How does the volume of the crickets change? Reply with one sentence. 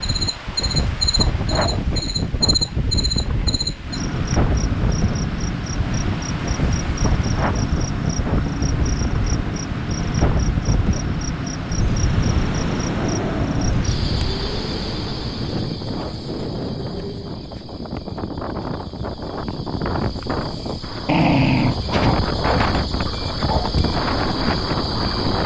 The volume of the crickets goes down, then up.